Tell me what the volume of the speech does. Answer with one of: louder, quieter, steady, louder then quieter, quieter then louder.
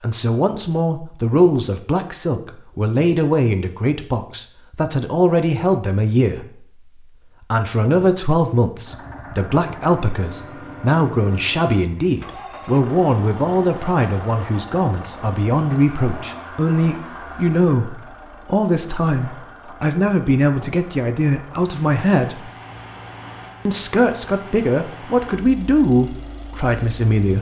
steady.